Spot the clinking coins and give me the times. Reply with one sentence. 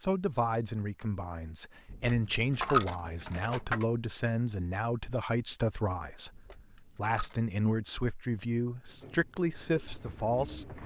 You can hear the clinking coins from 1.9 to 3.9 s and from 6.3 to 7.3 s.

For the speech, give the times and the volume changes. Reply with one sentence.
You can hear the speech from 0.0 to 10.8 s, at a steady volume.